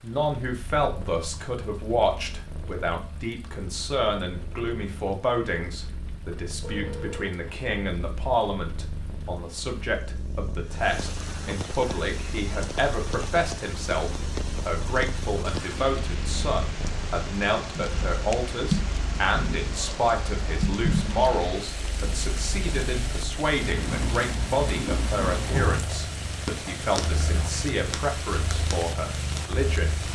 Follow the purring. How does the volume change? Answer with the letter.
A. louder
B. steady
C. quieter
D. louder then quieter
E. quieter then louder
A.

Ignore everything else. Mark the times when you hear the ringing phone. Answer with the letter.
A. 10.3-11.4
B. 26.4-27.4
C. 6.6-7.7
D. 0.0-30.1
C.